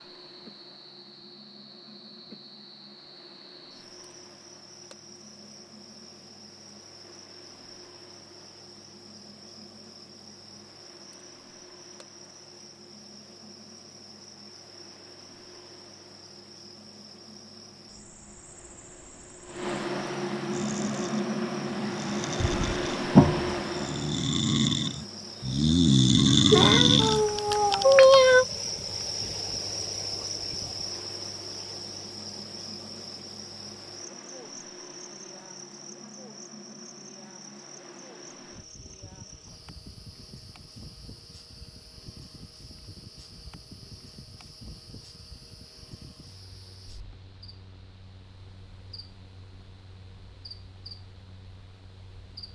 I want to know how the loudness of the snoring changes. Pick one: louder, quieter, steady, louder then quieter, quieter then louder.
louder.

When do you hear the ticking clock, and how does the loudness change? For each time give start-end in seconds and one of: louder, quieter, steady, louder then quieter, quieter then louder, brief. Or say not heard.
not heard.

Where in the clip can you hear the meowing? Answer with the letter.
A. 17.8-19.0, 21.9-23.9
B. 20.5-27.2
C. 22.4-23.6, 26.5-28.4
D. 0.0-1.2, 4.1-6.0
C.